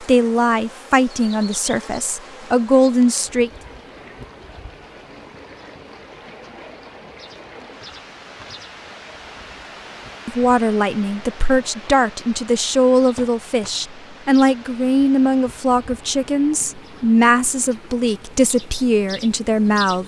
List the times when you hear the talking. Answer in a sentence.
The talking can be heard from 0.0 to 3.5 s and from 10.2 to 20.0 s.